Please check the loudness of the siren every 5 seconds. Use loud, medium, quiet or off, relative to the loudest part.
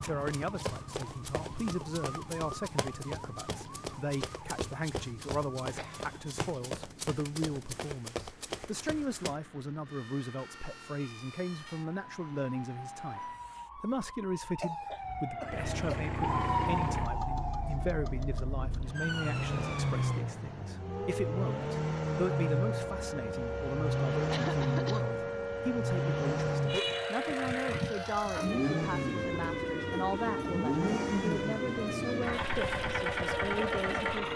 medium, quiet, medium, loud, loud, loud, loud.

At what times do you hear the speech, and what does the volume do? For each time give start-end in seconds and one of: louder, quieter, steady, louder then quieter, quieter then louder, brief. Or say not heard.
0.1-34.3 steady.